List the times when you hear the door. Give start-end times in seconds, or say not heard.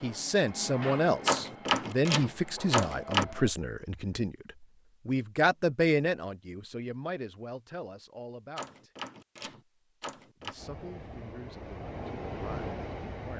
1.2-3.2, 8.6-10.6.